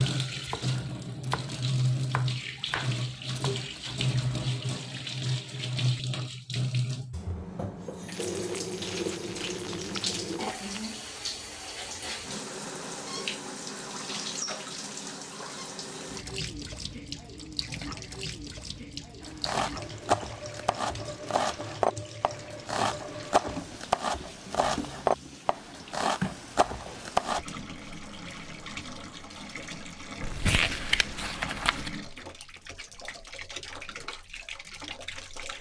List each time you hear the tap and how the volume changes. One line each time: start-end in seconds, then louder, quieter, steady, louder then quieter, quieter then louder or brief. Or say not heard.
0.0-35.5 quieter.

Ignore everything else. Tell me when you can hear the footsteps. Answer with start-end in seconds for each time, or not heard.
not heard.